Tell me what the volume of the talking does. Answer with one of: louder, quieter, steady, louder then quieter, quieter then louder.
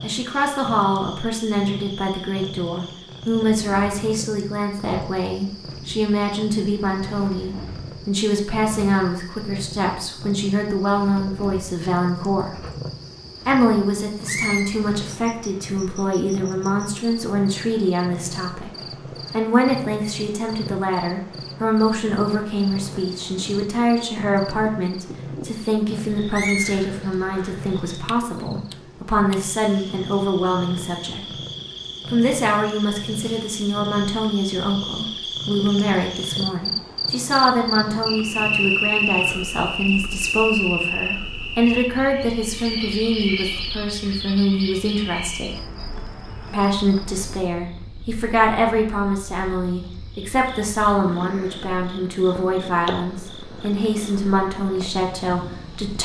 steady.